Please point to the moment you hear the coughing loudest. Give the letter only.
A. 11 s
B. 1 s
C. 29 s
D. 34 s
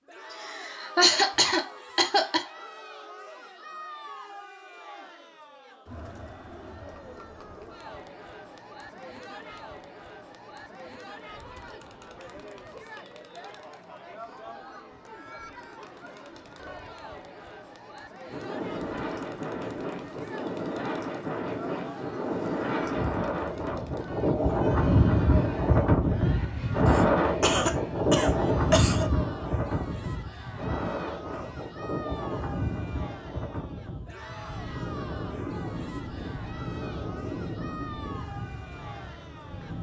B.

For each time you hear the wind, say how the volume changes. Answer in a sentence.
The wind can be heard from 18.2 to 39.7 s, getting louder then quieter.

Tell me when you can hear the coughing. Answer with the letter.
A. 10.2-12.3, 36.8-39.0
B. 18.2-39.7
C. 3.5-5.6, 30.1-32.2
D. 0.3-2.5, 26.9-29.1
D.